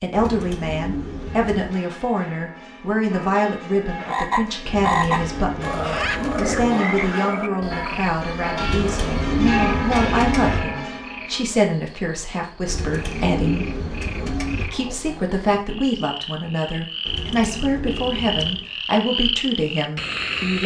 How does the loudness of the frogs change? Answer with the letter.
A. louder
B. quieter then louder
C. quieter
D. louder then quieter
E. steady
B.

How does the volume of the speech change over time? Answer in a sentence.
The loudness of the speech stays about the same.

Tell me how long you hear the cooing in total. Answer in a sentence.
You can hear the cooing for 9 seconds altogether.